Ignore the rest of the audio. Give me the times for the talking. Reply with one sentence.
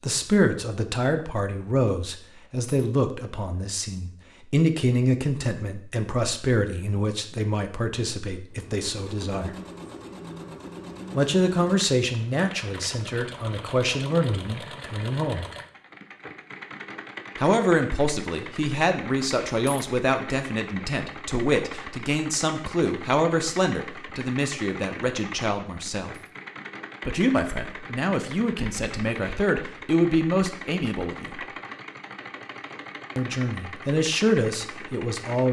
The talking can be heard from 0.0 to 9.6 s, from 11.1 to 15.4 s, from 17.4 to 26.1 s, from 27.1 to 31.4 s and from 33.1 to 35.4 s.